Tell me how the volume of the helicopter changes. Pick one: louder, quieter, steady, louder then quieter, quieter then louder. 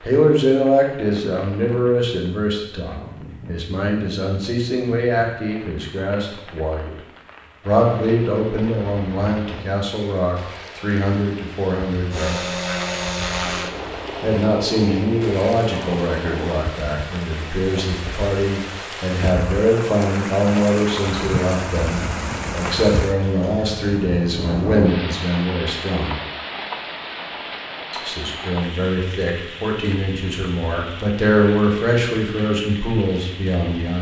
quieter.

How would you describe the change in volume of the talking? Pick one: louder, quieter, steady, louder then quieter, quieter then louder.
steady.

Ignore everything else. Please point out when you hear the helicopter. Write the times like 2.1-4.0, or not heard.
12.1-16.6.